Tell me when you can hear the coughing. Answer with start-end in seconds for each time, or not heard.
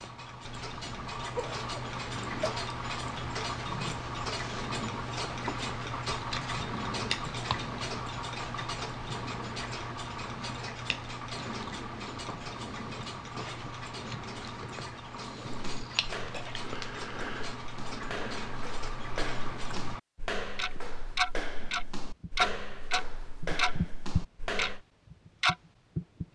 1.3-2.5.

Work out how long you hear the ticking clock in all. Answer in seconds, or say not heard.
26 s.